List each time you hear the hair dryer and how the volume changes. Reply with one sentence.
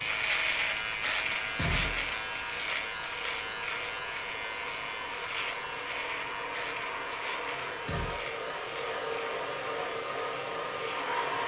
The hair dryer can be heard from 0.0 to 11.4 s, getting louder.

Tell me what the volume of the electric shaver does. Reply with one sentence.
The loudness of the electric shaver goes down.